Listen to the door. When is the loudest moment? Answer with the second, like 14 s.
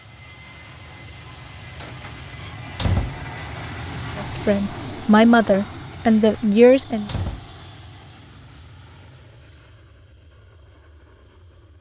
3 s.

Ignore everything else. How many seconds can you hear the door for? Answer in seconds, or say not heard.
3 s.